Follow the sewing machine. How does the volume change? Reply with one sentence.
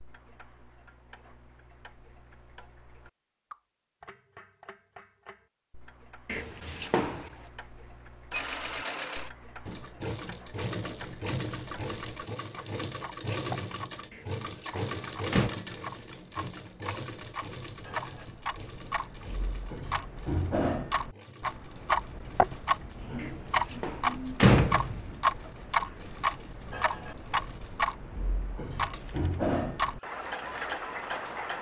The loudness of the sewing machine goes down.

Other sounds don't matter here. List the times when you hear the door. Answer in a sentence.
The door can be heard from 6.2 to 7.3 s, from 14.1 to 15.6 s and from 23.2 to 25.1 s.